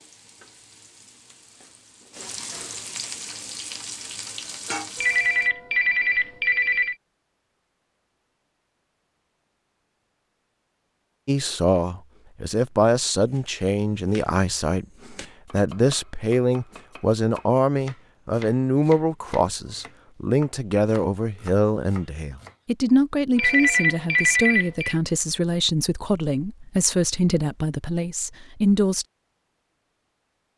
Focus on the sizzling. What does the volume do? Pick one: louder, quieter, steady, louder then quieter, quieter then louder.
louder.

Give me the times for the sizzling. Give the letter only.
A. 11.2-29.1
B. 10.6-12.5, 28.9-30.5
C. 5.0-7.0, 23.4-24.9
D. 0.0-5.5
D.